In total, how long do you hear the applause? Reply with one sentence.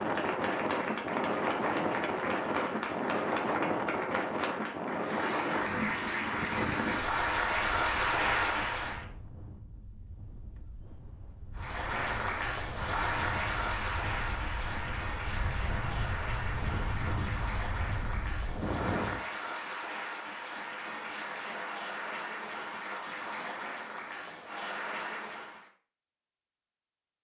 The applause can be heard for 23 seconds in total.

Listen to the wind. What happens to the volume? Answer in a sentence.
The loudness of the wind goes down, then up.